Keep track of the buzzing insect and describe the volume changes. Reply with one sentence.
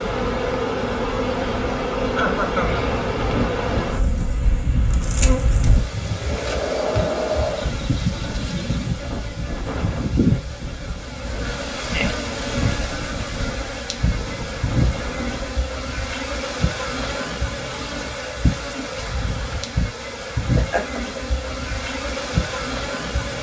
The volume of the buzzing insect stays about the same.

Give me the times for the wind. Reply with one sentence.
The wind can be heard from 0.0 to 15.7 s.